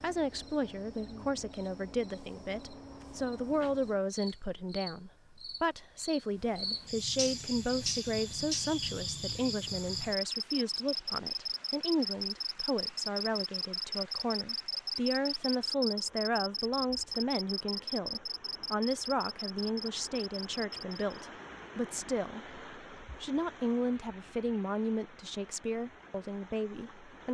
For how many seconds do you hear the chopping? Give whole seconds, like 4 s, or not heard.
not heard.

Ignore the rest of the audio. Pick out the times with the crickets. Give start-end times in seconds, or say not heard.
0.0-21.1.